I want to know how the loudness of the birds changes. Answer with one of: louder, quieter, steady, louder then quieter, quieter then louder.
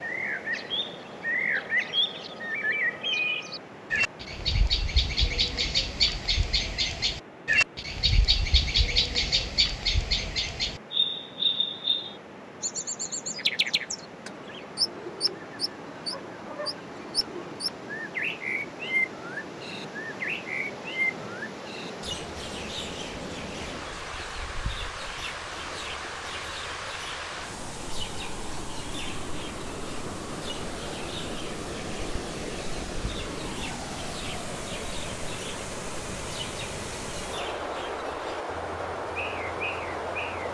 quieter.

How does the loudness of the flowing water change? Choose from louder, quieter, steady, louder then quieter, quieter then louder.
louder.